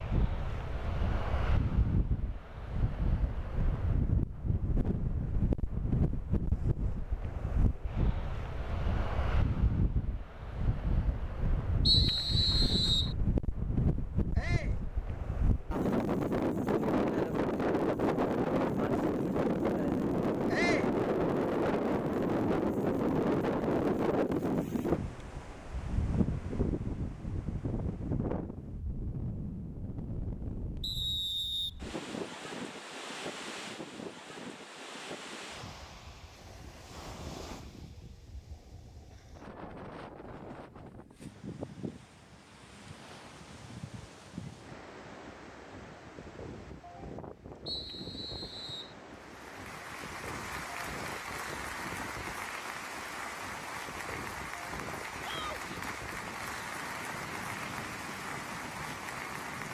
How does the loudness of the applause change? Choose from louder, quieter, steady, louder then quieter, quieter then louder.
steady.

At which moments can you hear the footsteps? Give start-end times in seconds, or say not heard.
not heard.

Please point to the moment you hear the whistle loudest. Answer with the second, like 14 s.
12 s.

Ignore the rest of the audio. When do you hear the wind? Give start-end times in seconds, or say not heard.
0.0-59.6.